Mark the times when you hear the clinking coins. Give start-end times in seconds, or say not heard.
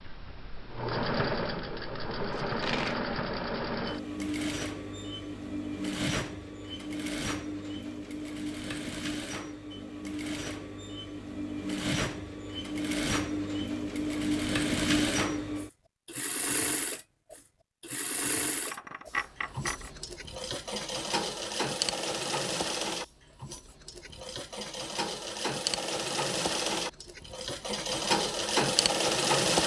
2.3-3.0, 18.6-19.9.